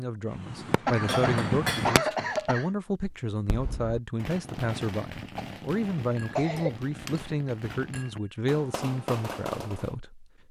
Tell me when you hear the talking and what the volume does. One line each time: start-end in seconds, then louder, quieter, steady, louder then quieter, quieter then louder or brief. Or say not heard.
0.0-10.4 steady.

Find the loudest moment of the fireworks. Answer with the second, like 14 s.
1 s.